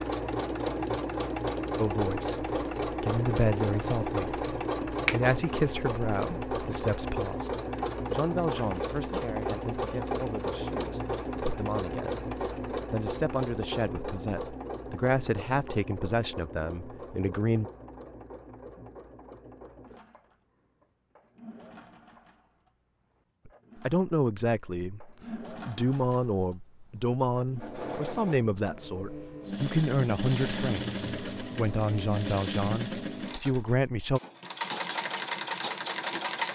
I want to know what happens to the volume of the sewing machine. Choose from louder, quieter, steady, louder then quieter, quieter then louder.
quieter then louder.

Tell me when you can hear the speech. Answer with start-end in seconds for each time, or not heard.
1.8-17.7, 23.4-34.2.